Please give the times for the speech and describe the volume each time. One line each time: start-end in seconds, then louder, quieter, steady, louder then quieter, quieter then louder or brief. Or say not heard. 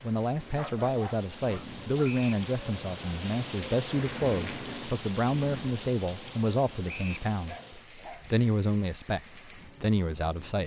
0.0-10.6 steady.